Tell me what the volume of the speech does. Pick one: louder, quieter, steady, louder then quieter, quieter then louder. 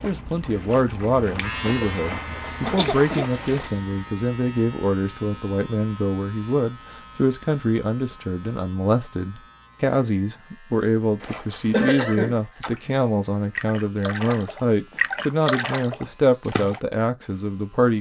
steady.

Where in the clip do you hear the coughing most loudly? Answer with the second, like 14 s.
12 s.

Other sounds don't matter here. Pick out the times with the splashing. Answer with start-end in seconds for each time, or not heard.
0.0-3.7, 11.2-16.8.